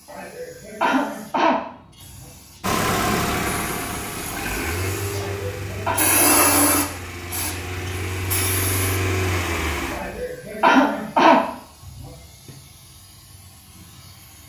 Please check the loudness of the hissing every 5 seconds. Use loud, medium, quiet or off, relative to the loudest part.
quiet, loud, quiet.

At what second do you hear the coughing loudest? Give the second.
11 s.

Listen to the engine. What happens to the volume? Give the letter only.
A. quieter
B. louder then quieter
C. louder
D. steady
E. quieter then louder
E.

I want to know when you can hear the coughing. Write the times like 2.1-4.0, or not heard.
0.1-2.2, 5.1-6.0, 9.9-12.5.